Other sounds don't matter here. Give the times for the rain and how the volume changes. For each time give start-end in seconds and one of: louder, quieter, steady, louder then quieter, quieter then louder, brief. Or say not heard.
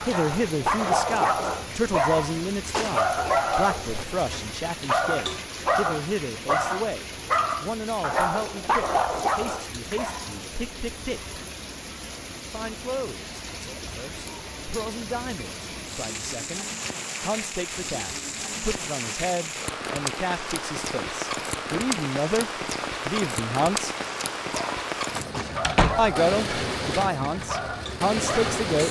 0.0-28.8 louder.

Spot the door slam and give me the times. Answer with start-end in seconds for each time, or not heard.
25.6-26.1.